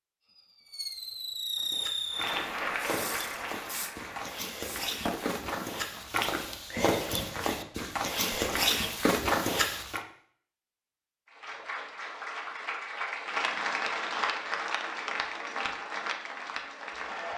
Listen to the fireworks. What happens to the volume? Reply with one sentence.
The loudness of the fireworks goes down.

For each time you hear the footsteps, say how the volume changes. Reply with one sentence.
The footsteps can be heard from 1.6 to 10.0 s, getting louder.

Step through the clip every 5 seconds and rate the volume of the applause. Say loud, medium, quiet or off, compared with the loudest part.
loud, off, loud, loud.